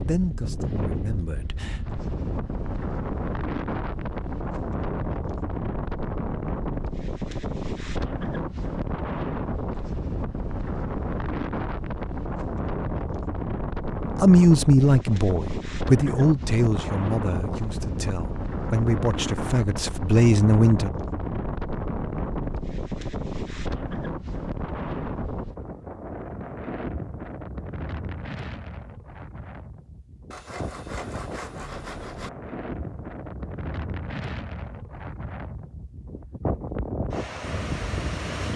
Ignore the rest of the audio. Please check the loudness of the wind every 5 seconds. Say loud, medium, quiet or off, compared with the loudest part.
loud, loud, loud, loud, loud, medium, medium, loud.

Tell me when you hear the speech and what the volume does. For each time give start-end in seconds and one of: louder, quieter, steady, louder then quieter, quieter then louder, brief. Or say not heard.
0.0-1.8 brief
14.2-20.9 quieter then louder.